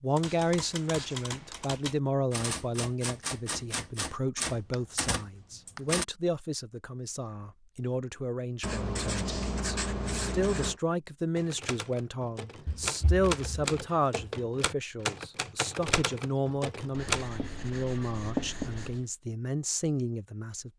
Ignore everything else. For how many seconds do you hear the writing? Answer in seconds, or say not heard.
9 s.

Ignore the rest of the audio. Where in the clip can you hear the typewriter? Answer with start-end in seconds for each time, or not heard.
0.1-6.0, 11.3-17.2.